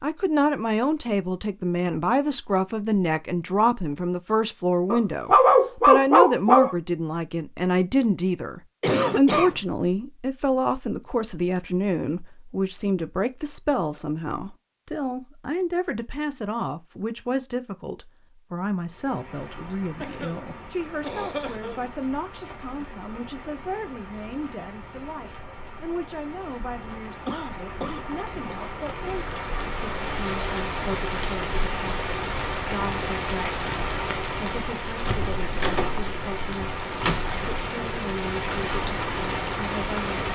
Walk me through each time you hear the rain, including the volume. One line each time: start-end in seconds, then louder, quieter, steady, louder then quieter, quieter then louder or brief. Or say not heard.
18.8-40.3 louder.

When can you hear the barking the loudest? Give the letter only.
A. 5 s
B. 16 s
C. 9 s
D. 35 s
A.